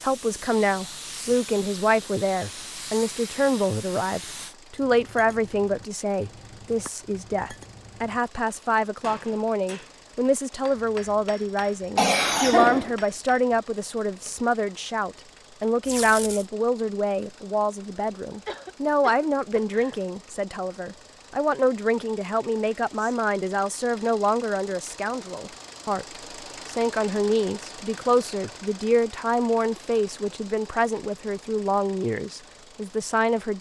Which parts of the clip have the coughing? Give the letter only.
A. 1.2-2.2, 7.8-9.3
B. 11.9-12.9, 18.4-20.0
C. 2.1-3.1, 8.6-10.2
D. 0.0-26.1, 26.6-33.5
B.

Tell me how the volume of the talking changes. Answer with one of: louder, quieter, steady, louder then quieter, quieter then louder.
steady.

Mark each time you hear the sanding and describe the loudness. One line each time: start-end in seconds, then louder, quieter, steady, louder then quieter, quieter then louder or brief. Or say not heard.
not heard.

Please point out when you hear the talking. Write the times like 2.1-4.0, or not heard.
0.0-26.1, 26.6-33.5.